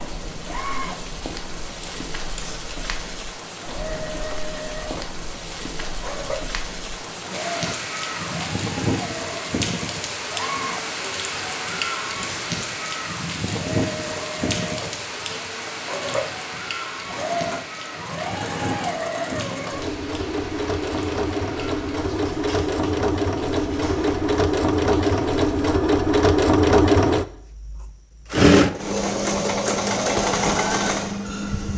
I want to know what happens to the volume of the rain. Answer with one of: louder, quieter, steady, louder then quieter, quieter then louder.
louder then quieter.